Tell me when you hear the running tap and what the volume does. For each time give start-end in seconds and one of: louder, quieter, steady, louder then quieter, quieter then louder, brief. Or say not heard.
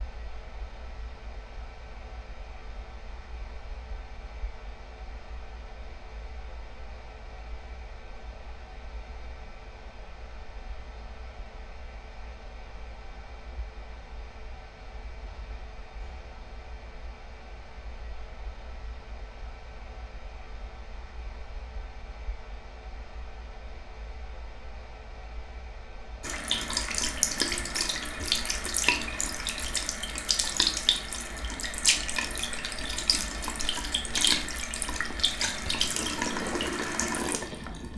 26.2-37.9 steady.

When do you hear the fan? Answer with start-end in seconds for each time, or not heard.
0.0-37.9.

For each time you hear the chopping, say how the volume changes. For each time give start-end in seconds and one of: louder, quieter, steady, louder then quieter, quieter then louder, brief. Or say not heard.
not heard.